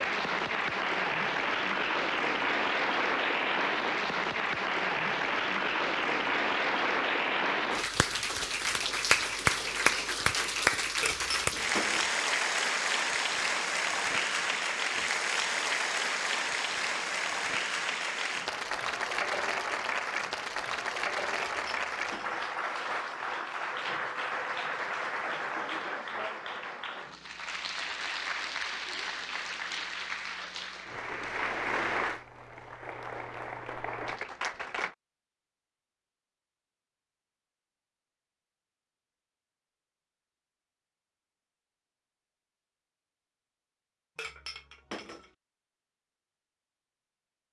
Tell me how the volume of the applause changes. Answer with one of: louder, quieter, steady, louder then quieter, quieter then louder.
quieter.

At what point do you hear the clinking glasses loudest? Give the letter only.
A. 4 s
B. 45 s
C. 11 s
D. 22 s
C.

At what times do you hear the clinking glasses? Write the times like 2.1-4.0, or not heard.
11.0-12.2, 21.4-22.5, 44.1-45.3.